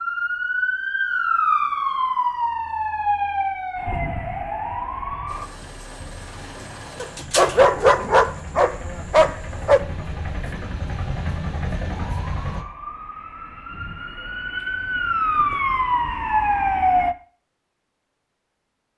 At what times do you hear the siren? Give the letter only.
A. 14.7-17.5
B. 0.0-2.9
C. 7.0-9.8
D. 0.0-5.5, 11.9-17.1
D.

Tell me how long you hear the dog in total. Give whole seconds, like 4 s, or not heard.
3 s.